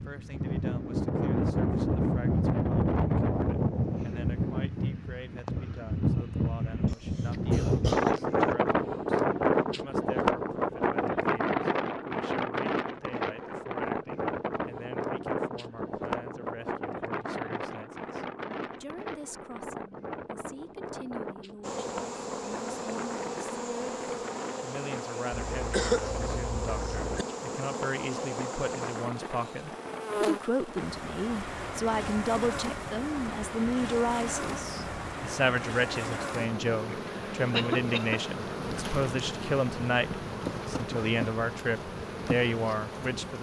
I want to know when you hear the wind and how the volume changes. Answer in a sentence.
The wind can be heard from 0.0 to 43.3 s, getting quieter.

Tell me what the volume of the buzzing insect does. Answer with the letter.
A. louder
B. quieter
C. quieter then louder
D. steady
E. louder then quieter
D.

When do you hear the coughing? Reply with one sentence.
You can hear the coughing from 6.8 to 8.6 s, from 25.3 to 27.2 s and from 37.5 to 38.2 s.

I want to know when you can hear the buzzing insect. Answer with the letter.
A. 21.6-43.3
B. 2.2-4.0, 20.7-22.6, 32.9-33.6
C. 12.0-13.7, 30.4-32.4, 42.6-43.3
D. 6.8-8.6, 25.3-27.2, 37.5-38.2
A.